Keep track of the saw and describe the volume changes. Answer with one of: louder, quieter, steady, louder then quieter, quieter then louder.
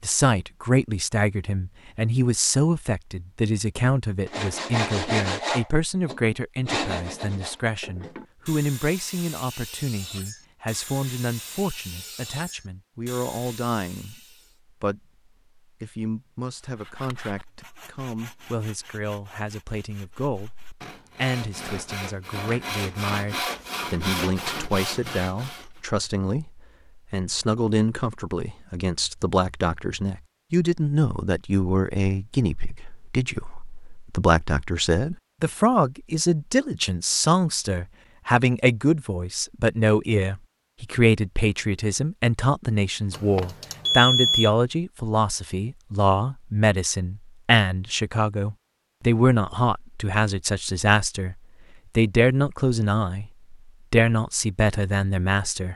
quieter then louder.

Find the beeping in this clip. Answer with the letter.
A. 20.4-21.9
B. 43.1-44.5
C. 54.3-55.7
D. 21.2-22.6
B.